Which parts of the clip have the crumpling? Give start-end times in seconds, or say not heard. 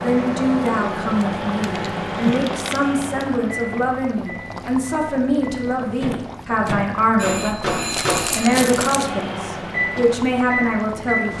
1.6-3.2, 7.9-9.1.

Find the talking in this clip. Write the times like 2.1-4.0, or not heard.
0.0-11.3.